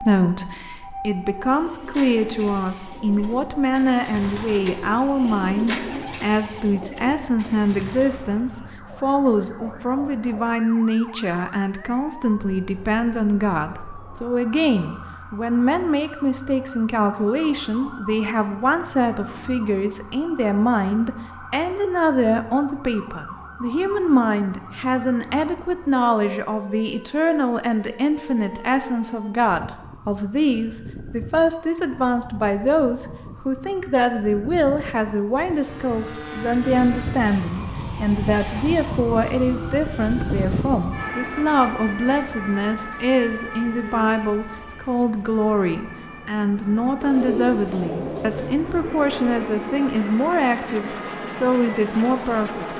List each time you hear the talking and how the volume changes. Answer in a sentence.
The talking can be heard from 0.0 to 52.7 s, at a steady volume.